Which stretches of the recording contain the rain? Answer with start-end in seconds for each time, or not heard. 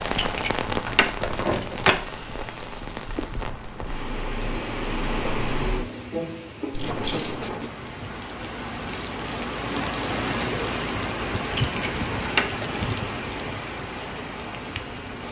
0.0-15.2.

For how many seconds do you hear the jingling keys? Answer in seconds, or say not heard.
4 s.